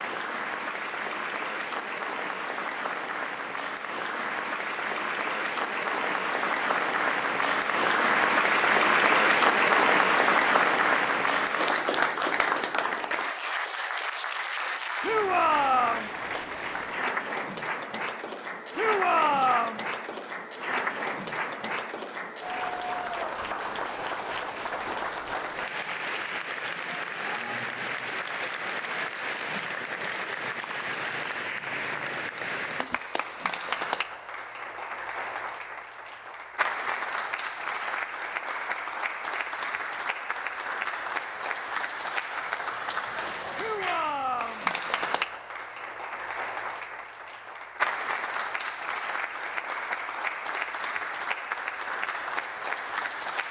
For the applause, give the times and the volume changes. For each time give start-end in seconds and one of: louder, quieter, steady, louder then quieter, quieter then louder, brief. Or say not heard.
0.0-53.4 quieter.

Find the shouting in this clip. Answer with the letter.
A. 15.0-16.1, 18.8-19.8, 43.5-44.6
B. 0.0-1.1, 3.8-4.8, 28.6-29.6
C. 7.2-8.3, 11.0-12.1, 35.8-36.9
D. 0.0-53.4
A.